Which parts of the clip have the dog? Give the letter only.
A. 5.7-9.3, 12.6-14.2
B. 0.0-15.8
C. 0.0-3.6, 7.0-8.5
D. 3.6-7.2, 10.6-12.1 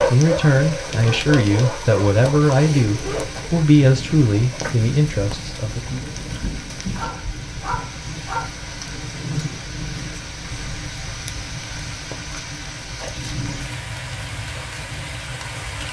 C.